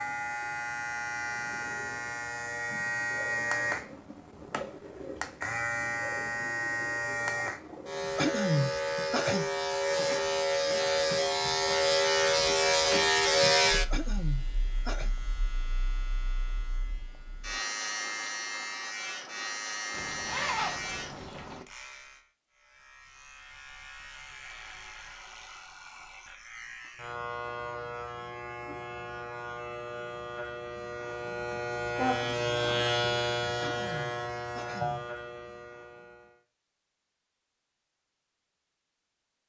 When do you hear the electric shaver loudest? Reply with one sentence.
The volume of the electric shaver peaks at 13 seconds.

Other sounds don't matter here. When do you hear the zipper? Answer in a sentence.
You can hear the zipper from 9.8 to 11.1 s and from 19.9 to 21.6 s.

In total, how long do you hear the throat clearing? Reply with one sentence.
The throat clearing can be heard for 4 seconds in total.